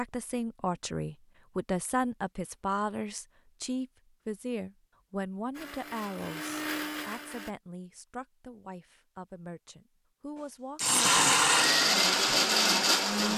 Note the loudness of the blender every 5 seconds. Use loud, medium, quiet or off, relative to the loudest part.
off, quiet, loud.